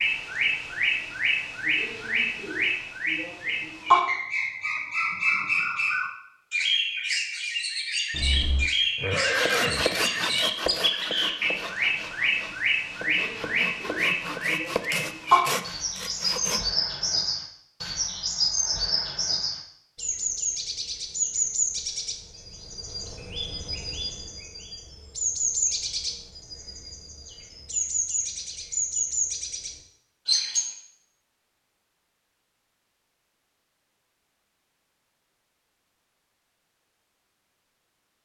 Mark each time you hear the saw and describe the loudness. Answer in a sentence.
The saw can be heard from 9.3 to 16.6 s, getting quieter then louder.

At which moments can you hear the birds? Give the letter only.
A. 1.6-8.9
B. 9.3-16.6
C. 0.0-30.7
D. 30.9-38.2
C.